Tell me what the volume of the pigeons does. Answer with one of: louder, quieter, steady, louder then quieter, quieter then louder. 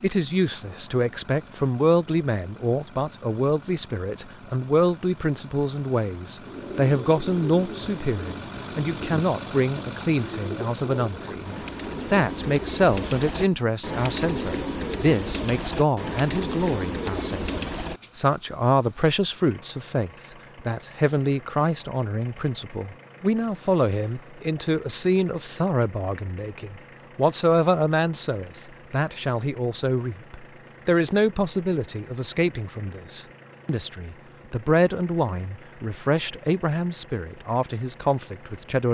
louder.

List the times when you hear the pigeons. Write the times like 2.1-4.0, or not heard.
6.4-18.1.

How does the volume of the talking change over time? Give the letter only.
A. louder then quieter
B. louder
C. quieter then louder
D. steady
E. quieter
D.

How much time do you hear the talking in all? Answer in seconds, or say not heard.
39 s.